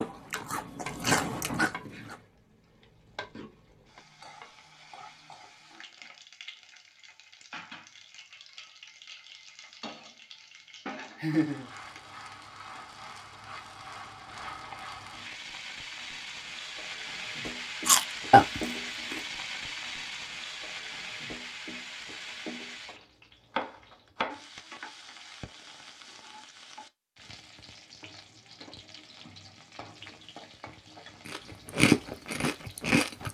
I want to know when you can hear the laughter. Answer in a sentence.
The laughter can be heard from 11.2 to 12.0 s.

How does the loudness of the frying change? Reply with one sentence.
The loudness of the frying goes up, then down.